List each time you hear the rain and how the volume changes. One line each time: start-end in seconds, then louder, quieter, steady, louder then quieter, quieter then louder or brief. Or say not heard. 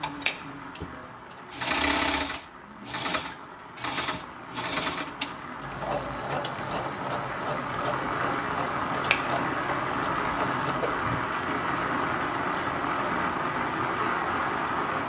0.0-15.0 louder.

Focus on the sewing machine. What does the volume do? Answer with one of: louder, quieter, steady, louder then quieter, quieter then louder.
quieter.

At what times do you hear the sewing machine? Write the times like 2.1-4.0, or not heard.
0.0-15.0.